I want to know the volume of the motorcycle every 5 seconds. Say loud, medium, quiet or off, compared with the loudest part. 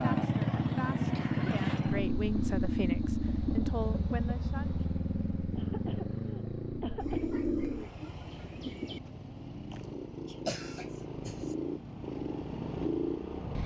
loud, medium, medium.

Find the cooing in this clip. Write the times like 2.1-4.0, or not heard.
7.0-9.0.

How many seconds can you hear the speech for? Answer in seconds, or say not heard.
5 s.